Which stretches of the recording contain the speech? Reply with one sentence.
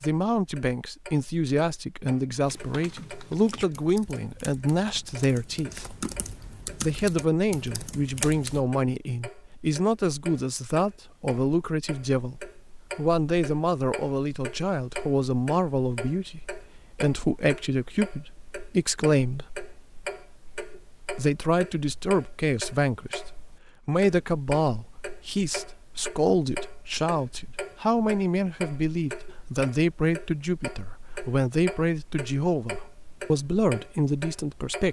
You can hear the speech from 0.0 to 6.0 s, from 6.8 to 19.5 s and from 21.1 to 34.8 s.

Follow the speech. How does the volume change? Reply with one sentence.
The volume of the speech stays about the same.